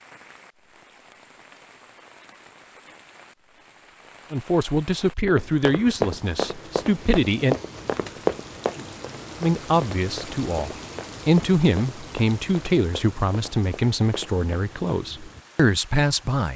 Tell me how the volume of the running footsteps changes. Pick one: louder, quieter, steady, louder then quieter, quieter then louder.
quieter.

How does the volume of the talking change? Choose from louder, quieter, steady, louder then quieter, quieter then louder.
steady.